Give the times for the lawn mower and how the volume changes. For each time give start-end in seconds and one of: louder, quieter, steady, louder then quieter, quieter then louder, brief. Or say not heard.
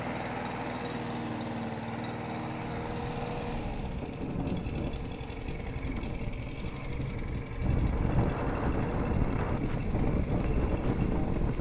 0.0-11.5 quieter.